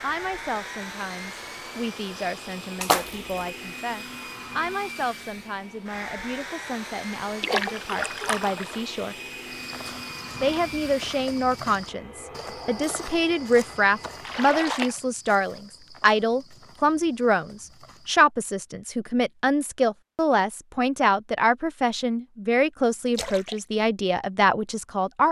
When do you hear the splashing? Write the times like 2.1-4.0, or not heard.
2.8-3.5, 7.4-8.8, 14.2-15.0, 23.1-23.6.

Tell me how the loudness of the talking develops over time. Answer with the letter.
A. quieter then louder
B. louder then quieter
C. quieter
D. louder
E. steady
D.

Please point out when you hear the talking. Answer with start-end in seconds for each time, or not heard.
0.0-9.2, 10.4-25.2.